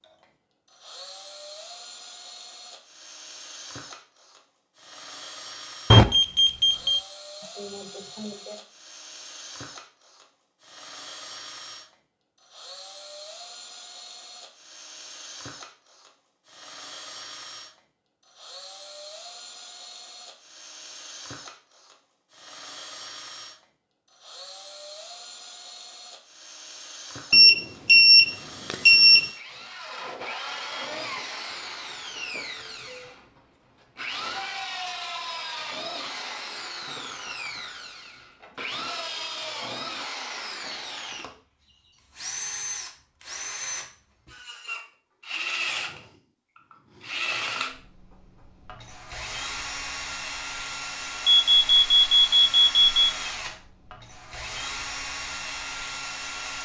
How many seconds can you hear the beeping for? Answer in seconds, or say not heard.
5 s.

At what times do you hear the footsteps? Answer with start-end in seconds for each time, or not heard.
not heard.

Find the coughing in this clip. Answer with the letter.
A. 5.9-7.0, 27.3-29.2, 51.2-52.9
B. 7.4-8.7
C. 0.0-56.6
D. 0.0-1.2
B.